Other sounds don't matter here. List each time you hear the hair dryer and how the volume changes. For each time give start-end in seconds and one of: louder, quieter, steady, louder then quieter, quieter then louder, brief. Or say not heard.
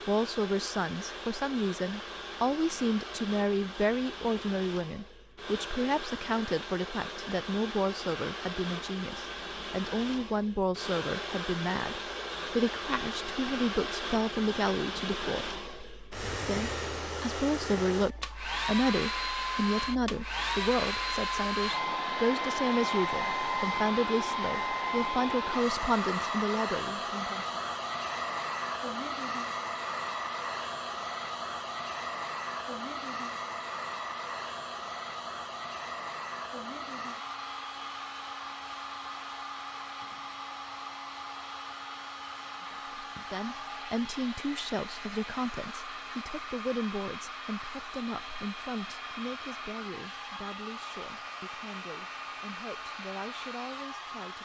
0.0-54.4 louder then quieter.